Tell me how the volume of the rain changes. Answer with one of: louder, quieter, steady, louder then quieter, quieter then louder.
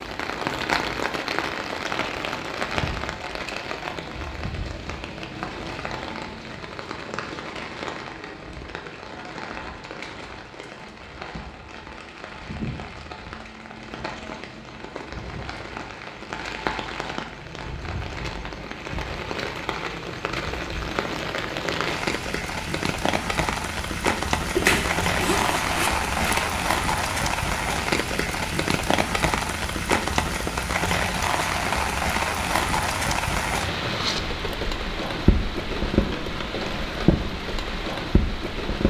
quieter then louder.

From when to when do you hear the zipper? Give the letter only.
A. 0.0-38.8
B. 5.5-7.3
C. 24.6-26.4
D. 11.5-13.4
C.